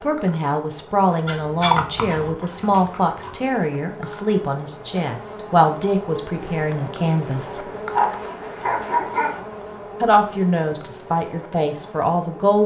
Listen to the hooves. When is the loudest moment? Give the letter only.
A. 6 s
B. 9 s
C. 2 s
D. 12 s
C.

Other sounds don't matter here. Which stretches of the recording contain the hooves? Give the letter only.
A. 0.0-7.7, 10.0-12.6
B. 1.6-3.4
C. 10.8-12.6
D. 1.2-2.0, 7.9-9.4
B.